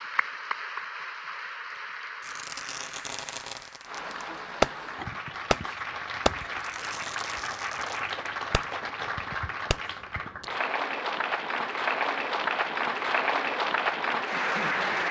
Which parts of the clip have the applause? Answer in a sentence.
You can hear the applause from 0.0 to 15.0 s.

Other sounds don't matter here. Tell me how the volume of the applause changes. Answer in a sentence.
The volume of the applause goes up.